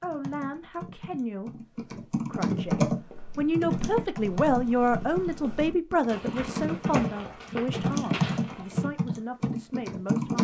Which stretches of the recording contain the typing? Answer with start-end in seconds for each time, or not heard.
0.0-10.3.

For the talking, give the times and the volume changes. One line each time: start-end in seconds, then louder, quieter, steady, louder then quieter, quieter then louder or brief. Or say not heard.
0.0-10.3 louder then quieter.